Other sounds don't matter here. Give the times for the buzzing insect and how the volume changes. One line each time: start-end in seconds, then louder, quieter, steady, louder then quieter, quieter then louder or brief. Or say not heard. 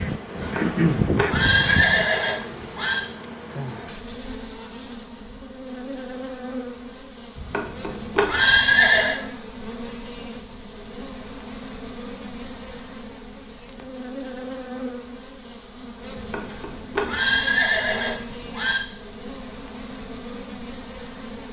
0.0-21.4 quieter.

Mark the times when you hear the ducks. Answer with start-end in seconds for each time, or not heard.
0.0-2.0.